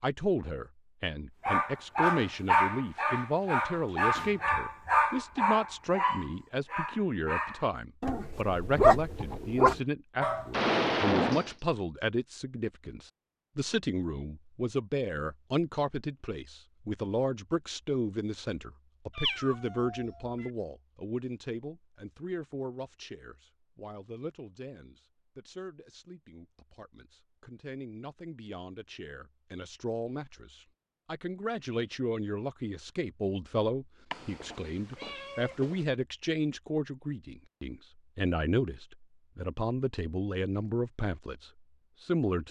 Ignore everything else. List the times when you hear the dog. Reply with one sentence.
You can hear the dog from 1.4 to 10.6 s.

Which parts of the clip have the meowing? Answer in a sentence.
The meowing can be heard from 10.5 to 11.6 s, from 19.1 to 20.5 s and from 34.1 to 35.9 s.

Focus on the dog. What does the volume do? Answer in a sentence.
The volume of the dog goes down, then up.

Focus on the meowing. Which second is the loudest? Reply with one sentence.
The loudest moment of the meowing is at 11 seconds.